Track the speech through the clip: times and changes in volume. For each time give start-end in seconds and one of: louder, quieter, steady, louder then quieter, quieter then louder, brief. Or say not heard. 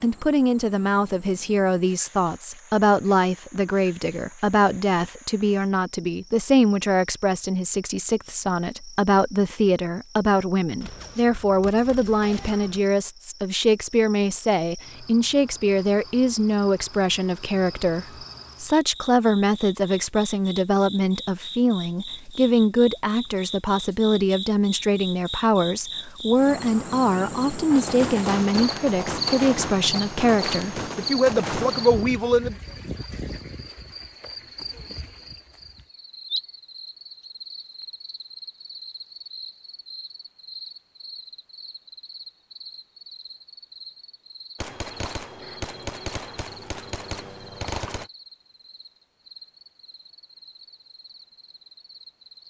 0.0-32.5 steady.